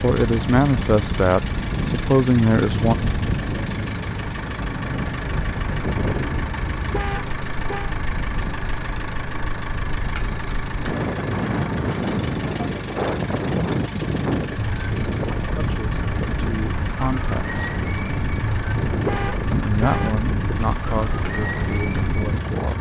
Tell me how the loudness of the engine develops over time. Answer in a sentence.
The volume of the engine stays about the same.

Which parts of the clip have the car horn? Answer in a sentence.
You can hear the car horn from 6.8 to 8.0 s and from 18.9 to 20.6 s.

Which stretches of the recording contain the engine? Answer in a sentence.
The engine can be heard from 0.0 to 22.7 s.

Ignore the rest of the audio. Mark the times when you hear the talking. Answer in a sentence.
The talking can be heard from 0.0 to 3.0 s, from 15.6 to 17.8 s and from 19.5 to 22.7 s.